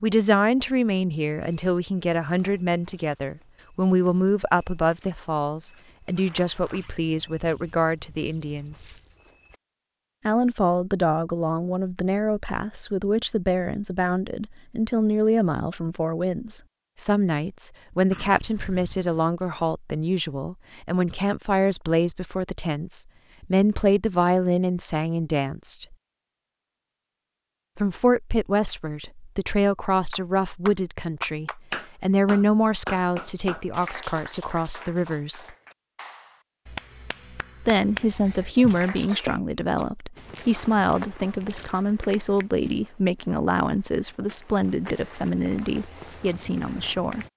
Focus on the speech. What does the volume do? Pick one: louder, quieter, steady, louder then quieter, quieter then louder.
steady.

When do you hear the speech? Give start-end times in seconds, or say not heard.
0.0-8.9, 10.2-25.9, 27.8-35.5, 37.6-47.2.